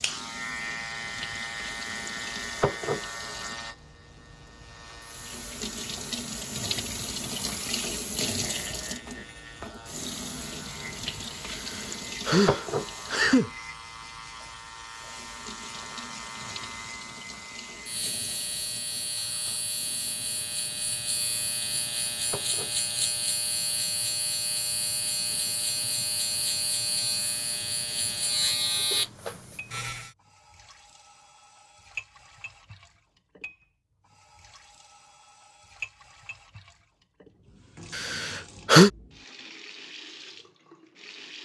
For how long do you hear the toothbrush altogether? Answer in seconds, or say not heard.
not heard.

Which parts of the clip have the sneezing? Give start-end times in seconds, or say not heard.
11.5-13.5, 38.0-38.9.